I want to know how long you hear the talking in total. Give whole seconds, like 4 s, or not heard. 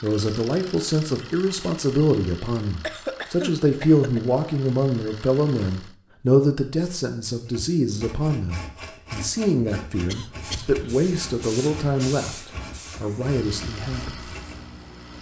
14 s.